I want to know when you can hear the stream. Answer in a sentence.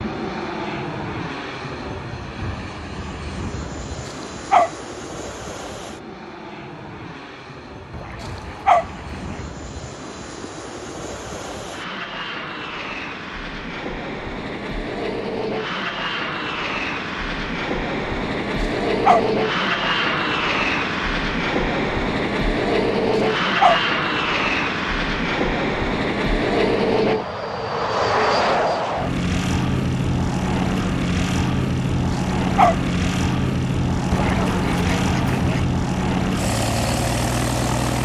The stream can't be heard in this clip.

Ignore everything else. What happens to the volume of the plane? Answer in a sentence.
The loudness of the plane goes up.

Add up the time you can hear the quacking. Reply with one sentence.
The quacking can be heard for 3 seconds in total.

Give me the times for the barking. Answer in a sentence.
You can hear the barking from 4.0 to 4.7 s, from 8.2 to 8.8 s, from 18.6 to 19.2 s, from 23.1 to 23.8 s and from 32.1 to 32.8 s.